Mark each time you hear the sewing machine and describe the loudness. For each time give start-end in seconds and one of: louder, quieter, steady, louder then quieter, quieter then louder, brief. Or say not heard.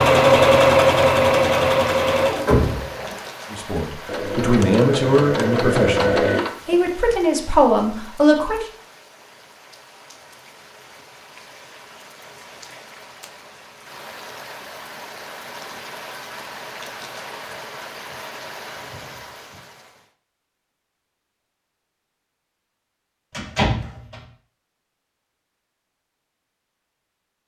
0.0-6.8 quieter then louder.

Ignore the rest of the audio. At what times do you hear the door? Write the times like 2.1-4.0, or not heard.
2.5-3.1, 23.3-24.2.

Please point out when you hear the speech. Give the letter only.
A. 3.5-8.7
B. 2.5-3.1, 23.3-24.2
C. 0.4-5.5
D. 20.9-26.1
A.